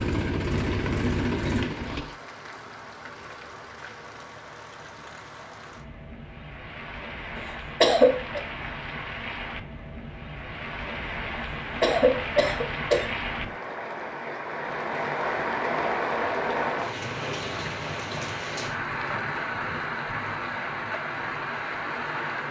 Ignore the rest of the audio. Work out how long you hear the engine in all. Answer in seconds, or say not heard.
2 s.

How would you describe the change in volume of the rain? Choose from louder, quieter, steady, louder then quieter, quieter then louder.
louder.